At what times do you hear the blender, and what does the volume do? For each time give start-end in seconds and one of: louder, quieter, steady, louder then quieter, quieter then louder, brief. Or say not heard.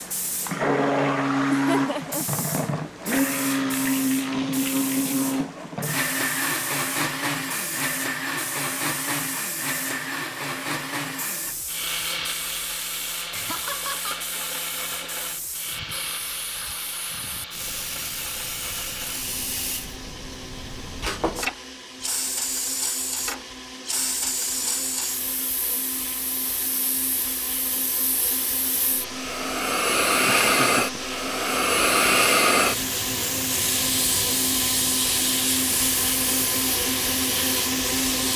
0.0-38.3 quieter then louder.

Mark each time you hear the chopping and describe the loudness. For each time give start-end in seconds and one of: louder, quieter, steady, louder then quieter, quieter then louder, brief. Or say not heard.
not heard.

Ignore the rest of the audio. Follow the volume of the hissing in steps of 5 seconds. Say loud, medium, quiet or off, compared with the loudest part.
quiet, quiet, quiet, quiet, medium, medium, loud, medium.